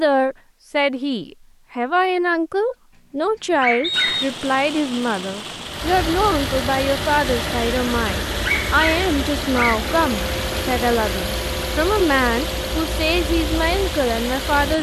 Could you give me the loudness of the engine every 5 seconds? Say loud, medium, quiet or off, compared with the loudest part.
off, loud, loud.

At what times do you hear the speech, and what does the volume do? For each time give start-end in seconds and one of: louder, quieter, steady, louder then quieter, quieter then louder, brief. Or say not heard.
0.0-14.7 steady.